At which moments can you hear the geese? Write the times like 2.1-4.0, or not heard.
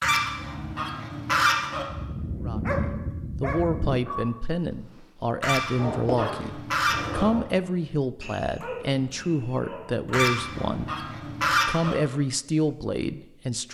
0.0-1.9, 5.4-7.2, 10.1-11.9.